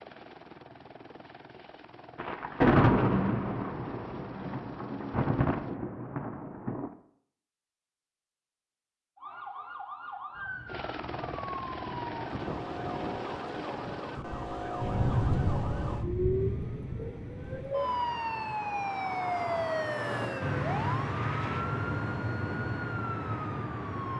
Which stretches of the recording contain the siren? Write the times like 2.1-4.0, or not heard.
9.2-24.1.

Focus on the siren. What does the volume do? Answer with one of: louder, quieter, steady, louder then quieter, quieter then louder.
louder.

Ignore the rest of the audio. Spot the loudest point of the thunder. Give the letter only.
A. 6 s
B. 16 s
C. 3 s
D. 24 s
C.